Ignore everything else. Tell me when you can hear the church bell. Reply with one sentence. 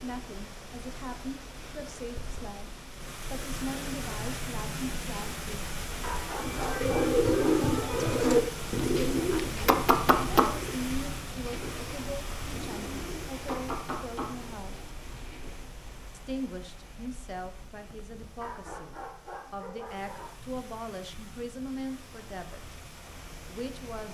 The church bell can't be heard in this clip.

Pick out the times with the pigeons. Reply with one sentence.
You can hear the pigeons from 6.4 to 15.6 s.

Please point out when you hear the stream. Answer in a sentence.
You can hear the stream from 0.0 to 24.1 s.